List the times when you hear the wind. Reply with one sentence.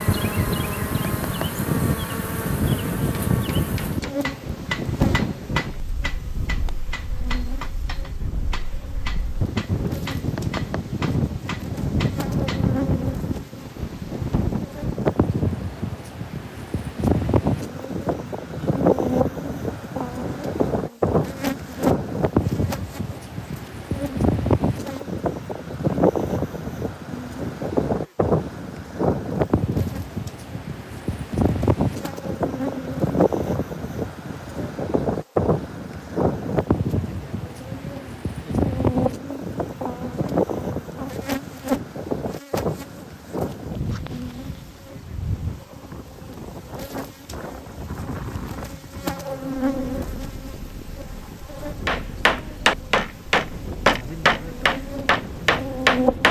You can hear the wind from 0.0 to 56.2 s.